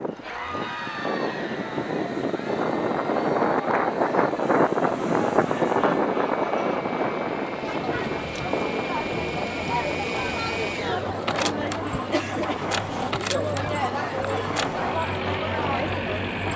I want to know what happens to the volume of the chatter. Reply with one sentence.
The loudness of the chatter goes up.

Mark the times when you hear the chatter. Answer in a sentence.
You can hear the chatter from 0.1 to 16.5 s.